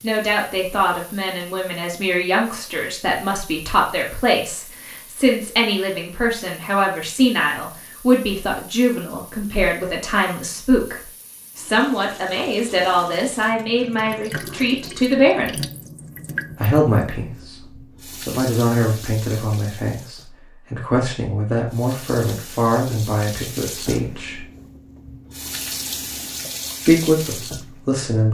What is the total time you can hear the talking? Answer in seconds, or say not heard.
25 s.